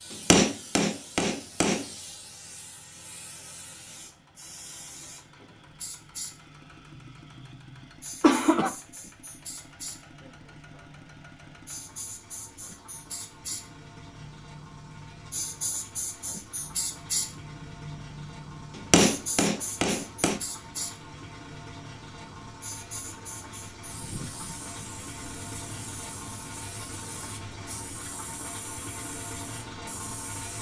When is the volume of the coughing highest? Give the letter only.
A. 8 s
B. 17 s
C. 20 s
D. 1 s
A.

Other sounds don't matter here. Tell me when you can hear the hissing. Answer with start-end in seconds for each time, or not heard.
0.0-30.5.